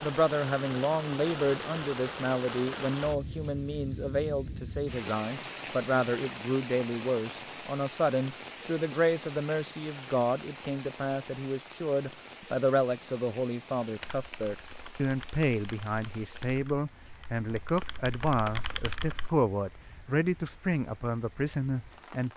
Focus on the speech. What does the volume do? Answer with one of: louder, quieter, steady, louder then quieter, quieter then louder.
steady.